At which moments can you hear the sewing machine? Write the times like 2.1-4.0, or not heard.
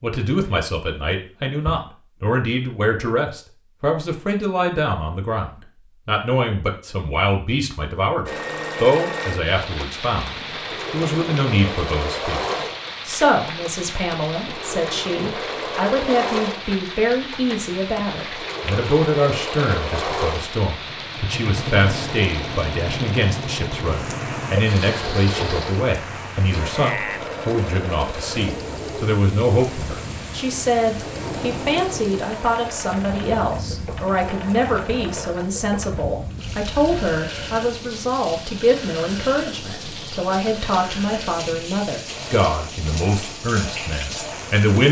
8.2-44.6.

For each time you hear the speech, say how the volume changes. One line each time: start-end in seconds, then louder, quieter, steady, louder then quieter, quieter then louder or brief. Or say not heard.
0.0-12.4 steady
13.1-44.8 steady.